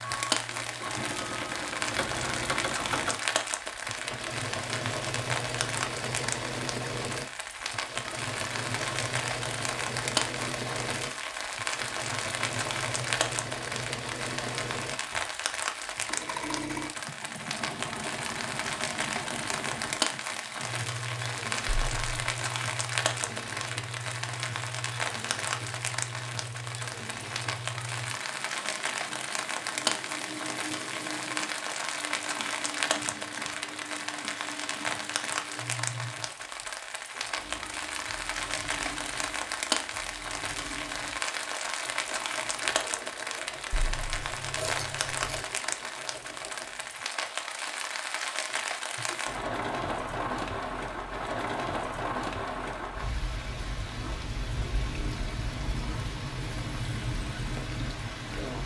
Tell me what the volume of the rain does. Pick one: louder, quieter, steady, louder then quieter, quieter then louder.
steady.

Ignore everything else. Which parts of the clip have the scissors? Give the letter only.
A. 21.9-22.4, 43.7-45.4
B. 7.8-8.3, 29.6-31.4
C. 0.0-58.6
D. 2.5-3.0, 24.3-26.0
A.